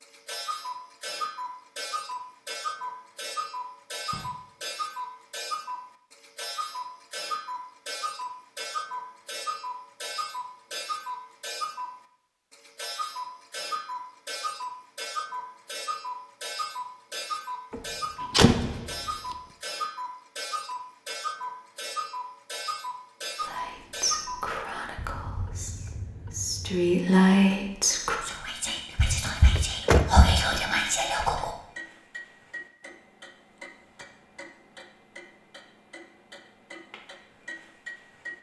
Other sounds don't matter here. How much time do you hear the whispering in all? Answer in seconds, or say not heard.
8 s.